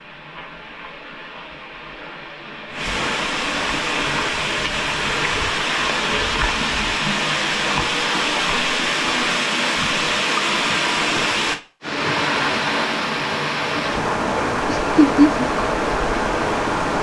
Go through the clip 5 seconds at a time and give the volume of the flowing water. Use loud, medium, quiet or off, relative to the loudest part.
medium, loud, loud, loud.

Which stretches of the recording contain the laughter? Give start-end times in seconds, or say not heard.
14.7-15.4.